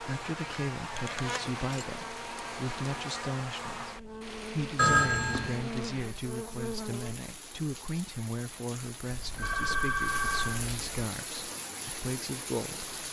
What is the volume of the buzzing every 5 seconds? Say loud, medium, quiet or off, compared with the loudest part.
loud, loud, off.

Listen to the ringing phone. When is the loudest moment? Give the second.
5 s.